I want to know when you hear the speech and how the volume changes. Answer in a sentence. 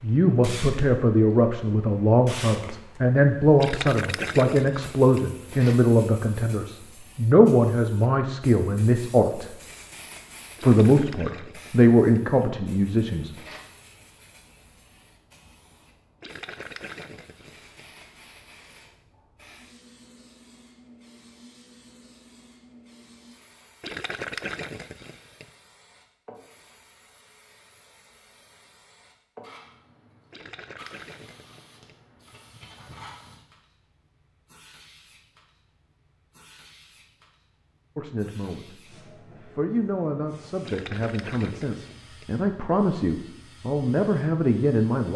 The speech can be heard from 0.0 to 9.5 s, at a steady volume; briefly from 10.6 to 13.3 s; briefly from 38.0 to 38.8 s; and from 39.4 to 45.1 s, getting louder.